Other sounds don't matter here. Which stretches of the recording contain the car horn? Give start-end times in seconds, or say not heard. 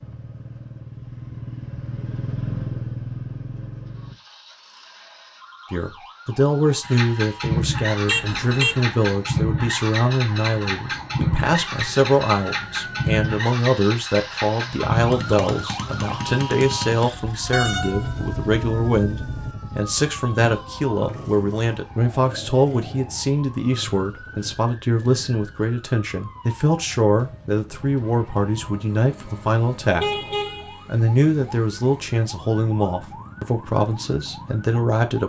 8.1-8.8, 17.5-19.6, 30.0-30.9.